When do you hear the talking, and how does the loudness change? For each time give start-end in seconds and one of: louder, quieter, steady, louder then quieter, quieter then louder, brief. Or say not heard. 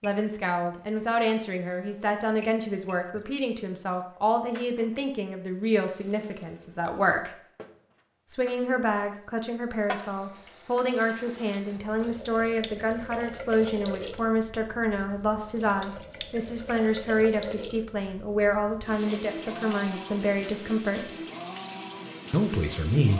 0.0-7.3 steady
8.3-21.1 steady
22.3-23.1 brief.